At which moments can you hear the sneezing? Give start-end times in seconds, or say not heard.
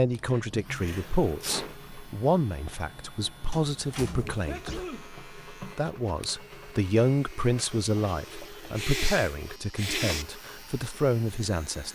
0.2-1.8, 4.5-5.1, 8.8-10.2.